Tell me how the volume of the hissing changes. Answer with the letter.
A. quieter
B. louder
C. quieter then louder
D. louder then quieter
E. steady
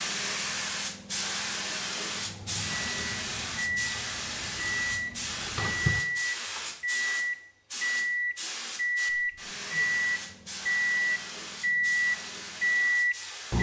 A.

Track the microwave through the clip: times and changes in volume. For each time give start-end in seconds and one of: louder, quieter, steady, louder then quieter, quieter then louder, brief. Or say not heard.
2.1-13.5 louder.